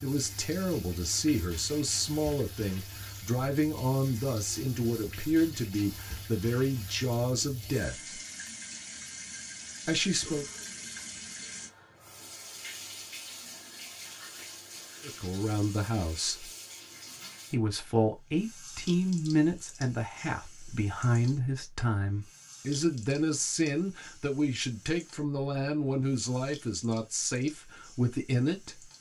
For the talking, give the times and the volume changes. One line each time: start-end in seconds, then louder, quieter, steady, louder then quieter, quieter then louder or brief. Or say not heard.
0.0-8.2 steady
9.8-10.4 brief
15.0-16.5 brief
17.5-28.9 steady.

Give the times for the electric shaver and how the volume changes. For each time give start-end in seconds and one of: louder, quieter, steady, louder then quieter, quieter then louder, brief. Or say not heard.
not heard.